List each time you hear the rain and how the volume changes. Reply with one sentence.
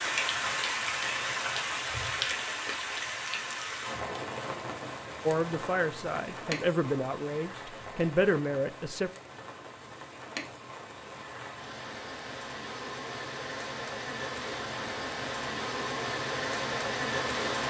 You can hear the rain from 0.0 to 17.6 s, getting quieter then louder.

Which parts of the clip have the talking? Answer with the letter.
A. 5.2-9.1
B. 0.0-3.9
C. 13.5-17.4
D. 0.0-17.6
A.